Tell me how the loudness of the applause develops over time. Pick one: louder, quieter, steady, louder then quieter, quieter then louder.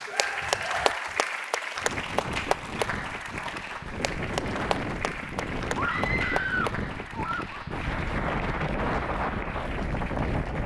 quieter.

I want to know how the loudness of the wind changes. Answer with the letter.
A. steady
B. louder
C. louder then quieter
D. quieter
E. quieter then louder
B.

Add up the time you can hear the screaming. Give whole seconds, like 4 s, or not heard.
3 s.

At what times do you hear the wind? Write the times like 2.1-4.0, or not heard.
1.8-10.6.